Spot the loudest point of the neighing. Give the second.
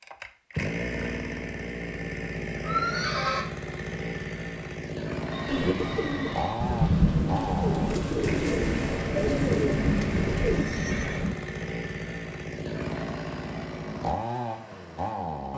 3 s.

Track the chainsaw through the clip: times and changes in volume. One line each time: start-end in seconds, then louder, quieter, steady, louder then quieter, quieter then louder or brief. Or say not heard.
0.0-15.5 steady.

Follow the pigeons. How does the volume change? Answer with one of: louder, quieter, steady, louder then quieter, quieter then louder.
louder.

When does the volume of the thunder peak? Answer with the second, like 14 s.
7 s.